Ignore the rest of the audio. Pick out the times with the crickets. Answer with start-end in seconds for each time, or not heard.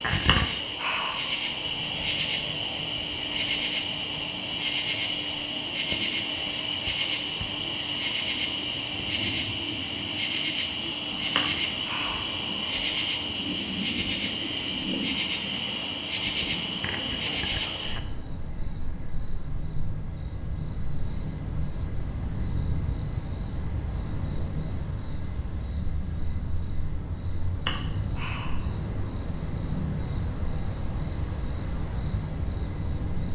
0.0-33.3.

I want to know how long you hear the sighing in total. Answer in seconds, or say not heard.
3 s.